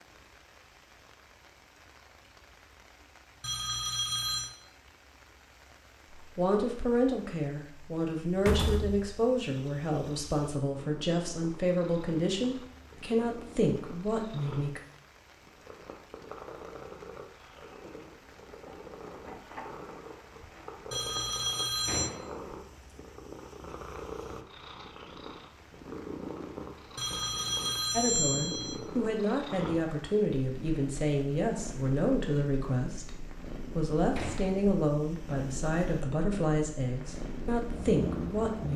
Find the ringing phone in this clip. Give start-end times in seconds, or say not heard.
3.4-4.5, 20.9-22.1, 26.9-28.8.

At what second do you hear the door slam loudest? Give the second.
9 s.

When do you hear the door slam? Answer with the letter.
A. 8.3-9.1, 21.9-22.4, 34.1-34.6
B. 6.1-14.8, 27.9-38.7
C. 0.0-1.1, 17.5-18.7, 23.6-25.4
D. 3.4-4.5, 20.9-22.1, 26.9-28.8
A.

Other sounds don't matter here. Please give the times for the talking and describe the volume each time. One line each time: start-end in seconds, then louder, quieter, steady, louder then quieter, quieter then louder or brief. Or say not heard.
6.1-14.8 steady
27.9-38.7 steady.